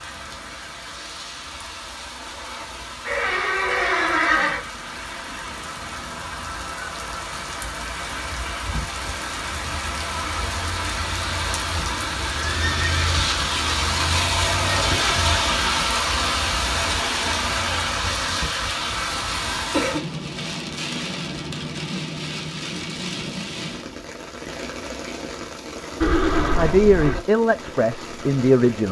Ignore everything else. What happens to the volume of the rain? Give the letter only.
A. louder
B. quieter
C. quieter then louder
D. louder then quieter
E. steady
D.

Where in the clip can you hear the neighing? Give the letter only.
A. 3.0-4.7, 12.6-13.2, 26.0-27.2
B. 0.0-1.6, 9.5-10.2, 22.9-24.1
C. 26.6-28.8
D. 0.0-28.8
A.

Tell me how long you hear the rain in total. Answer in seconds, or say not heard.
29 s.